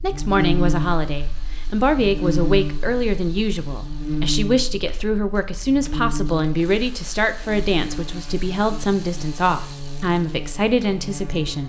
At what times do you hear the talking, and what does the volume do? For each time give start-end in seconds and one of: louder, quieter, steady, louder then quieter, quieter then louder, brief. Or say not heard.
0.0-11.6 steady.